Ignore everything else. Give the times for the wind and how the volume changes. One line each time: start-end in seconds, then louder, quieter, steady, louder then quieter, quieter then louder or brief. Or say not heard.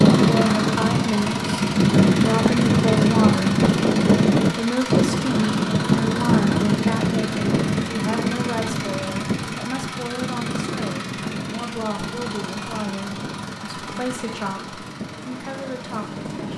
0.0-16.5 quieter.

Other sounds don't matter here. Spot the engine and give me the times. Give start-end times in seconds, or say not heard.
0.0-16.5.